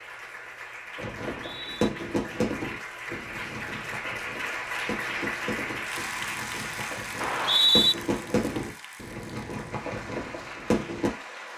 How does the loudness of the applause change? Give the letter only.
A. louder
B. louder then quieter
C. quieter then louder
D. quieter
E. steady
B.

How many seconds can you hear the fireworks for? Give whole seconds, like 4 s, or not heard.
10 s.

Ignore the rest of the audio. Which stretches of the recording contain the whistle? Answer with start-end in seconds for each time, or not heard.
1.4-1.9, 7.2-8.0.